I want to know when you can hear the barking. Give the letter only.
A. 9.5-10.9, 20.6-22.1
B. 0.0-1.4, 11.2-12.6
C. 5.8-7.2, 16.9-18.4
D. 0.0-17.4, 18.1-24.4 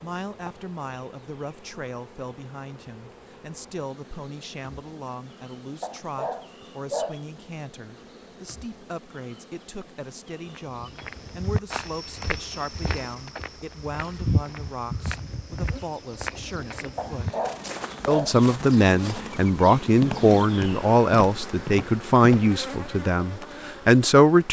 C.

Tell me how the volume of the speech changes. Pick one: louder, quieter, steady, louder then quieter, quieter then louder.
louder.